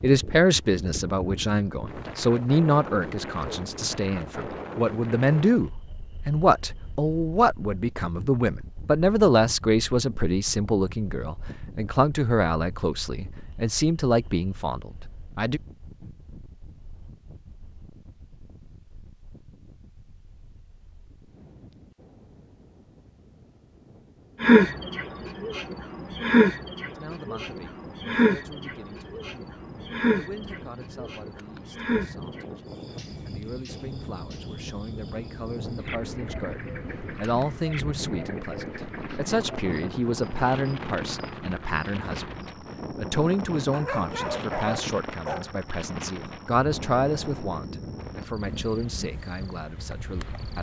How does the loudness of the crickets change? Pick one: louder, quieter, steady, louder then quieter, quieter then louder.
quieter.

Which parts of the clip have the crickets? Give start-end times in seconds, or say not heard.
24.4-50.5.